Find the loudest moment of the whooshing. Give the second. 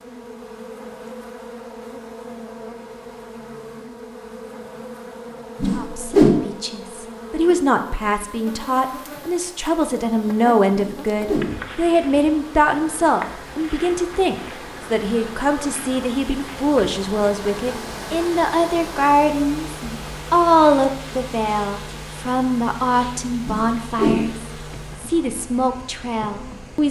6 s.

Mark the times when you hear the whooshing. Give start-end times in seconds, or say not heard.
5.6-6.3, 10.7-11.7, 23.4-24.4.